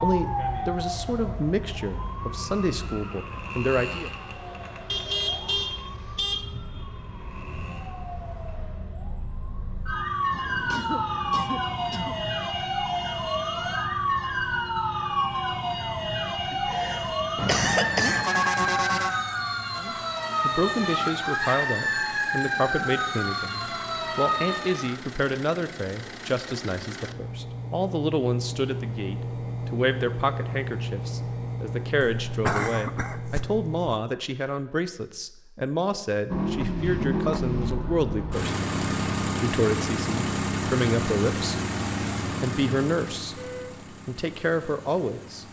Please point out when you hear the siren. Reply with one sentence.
The siren can be heard from 0.0 to 24.9 s.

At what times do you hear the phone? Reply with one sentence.
The phone can't be heard in this clip.